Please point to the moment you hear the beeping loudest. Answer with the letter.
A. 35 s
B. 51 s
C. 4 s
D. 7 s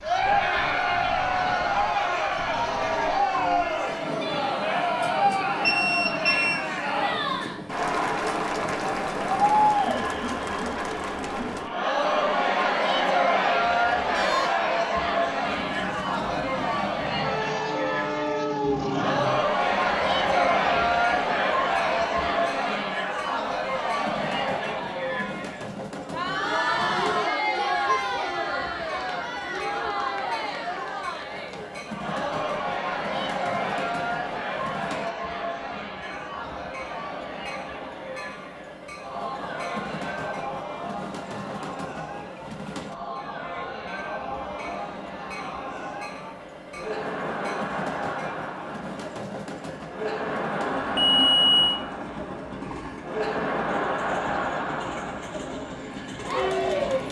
B.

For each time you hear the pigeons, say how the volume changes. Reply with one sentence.
The pigeons can't be heard in this clip.